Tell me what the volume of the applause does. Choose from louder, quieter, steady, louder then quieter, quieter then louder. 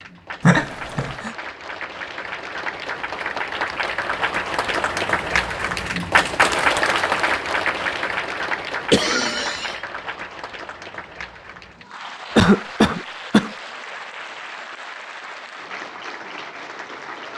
louder then quieter.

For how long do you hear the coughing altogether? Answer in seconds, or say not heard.
3 s.